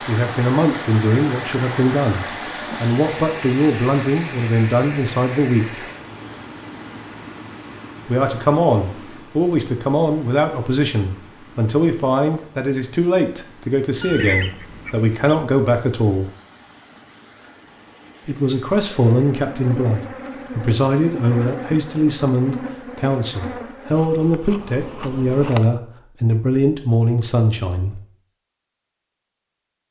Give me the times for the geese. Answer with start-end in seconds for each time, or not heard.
14.0-15.4.